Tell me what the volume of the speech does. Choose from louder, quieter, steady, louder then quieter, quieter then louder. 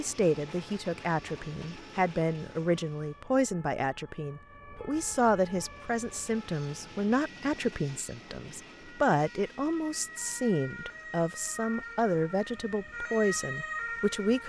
steady.